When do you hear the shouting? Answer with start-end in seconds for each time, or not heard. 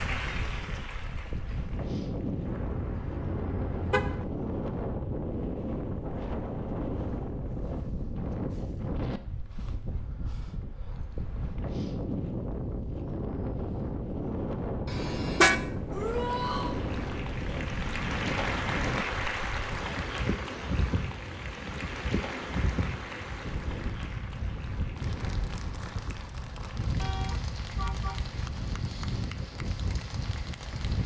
15.9-16.8.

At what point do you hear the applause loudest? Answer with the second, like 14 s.
19 s.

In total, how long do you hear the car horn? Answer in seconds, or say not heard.
4 s.